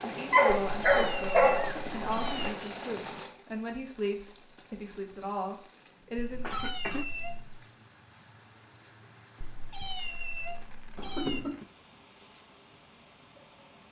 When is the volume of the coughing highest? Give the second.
11 s.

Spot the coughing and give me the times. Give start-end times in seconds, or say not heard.
1.6-2.0, 6.4-7.0, 10.9-11.7.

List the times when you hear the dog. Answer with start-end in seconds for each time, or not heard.
0.0-2.5.